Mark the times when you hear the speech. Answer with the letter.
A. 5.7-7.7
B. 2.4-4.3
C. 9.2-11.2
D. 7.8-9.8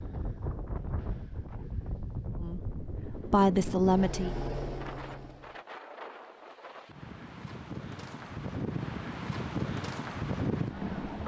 B.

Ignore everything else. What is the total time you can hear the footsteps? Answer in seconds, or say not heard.
not heard.